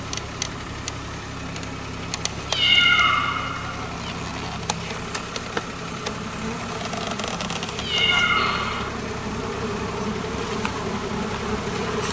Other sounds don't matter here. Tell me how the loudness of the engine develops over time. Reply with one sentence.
The volume of the engine stays about the same.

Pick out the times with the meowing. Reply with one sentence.
The meowing can be heard from 2.5 to 4.1 s and from 7.8 to 8.9 s.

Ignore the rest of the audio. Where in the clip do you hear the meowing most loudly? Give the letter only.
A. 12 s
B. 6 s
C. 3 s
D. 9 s
C.